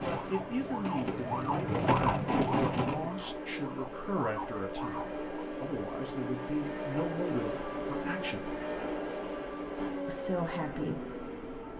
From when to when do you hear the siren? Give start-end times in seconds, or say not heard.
0.0-5.3.